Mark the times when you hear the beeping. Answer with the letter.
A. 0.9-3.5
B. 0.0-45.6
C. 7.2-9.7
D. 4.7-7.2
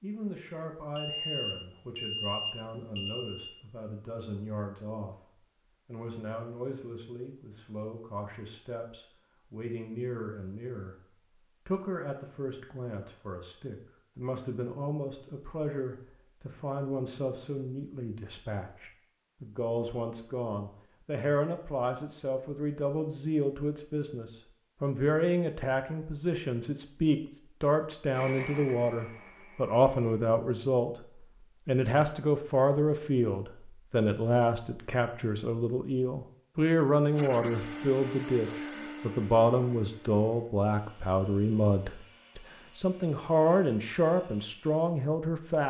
A.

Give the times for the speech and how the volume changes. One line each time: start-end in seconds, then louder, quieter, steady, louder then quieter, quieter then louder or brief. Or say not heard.
0.0-45.6 louder.